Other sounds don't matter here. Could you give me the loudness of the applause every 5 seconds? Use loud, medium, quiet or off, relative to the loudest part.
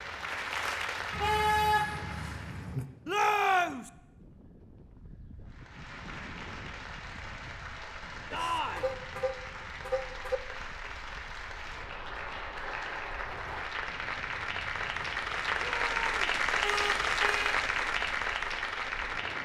medium, quiet, medium, loud.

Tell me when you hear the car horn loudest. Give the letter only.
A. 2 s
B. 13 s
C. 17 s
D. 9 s
A.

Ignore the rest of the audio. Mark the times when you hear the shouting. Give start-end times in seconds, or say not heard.
3.0-3.9, 8.3-8.9, 15.6-16.2.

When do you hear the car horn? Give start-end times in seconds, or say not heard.
1.1-2.9, 8.3-10.4, 16.4-17.4.